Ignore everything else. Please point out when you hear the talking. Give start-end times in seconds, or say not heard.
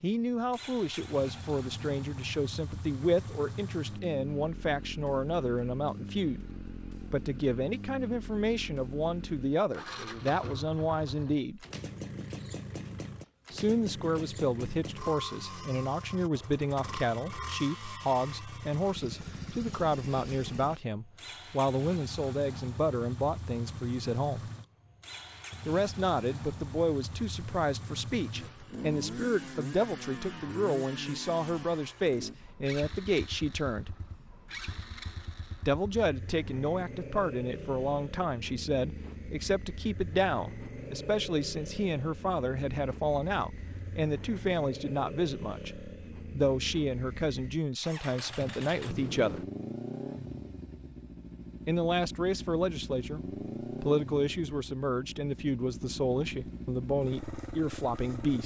0.0-11.7, 13.5-24.5, 25.6-34.0, 35.6-49.4, 51.6-58.4.